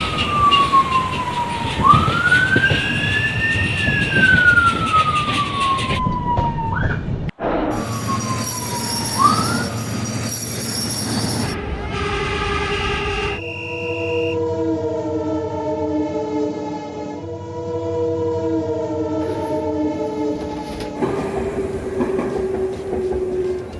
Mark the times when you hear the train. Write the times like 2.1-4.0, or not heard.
0.0-23.7.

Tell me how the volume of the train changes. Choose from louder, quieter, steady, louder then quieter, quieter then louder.
steady.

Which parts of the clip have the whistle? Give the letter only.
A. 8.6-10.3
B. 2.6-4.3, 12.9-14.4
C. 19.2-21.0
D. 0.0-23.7
B.